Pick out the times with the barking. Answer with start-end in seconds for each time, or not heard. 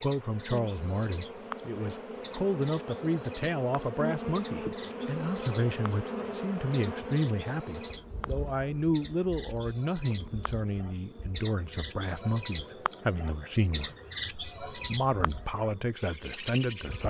not heard.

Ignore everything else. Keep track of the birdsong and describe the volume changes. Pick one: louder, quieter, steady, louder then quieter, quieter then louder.
louder.